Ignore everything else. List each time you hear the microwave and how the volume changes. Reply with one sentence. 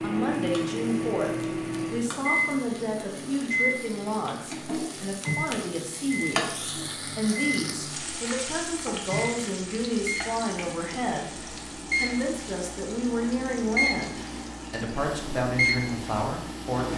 You can hear the microwave from 0.0 to 16.9 s, getting quieter then louder.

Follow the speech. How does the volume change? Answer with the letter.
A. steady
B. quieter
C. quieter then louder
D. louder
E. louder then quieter
A.